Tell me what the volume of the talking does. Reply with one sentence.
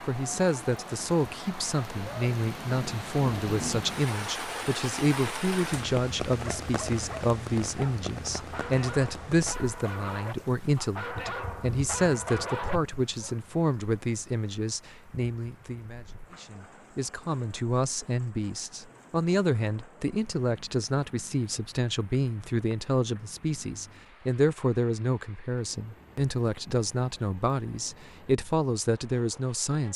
The loudness of the talking stays about the same.